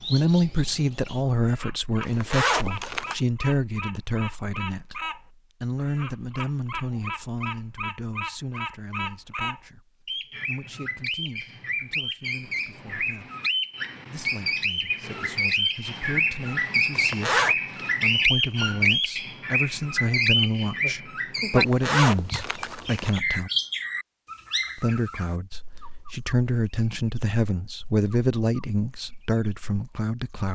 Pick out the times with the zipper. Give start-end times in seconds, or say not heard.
2.0-3.1, 16.9-17.6, 21.6-23.2.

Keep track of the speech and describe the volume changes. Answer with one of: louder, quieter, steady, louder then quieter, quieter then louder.
quieter then louder.